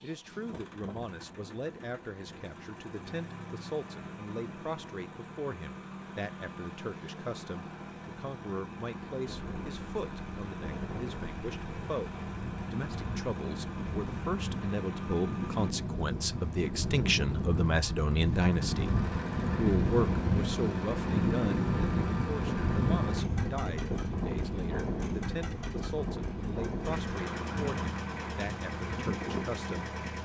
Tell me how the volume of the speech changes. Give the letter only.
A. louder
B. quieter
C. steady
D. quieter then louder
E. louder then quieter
E.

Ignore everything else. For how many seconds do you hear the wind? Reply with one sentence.
You can hear the wind for 21 seconds altogether.